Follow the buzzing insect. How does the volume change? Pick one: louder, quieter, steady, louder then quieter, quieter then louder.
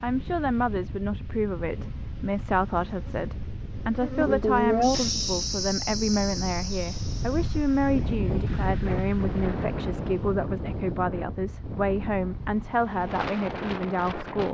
louder then quieter.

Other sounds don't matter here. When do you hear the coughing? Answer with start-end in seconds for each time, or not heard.
not heard.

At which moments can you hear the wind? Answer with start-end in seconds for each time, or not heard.
0.0-14.4.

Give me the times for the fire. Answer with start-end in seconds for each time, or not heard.
not heard.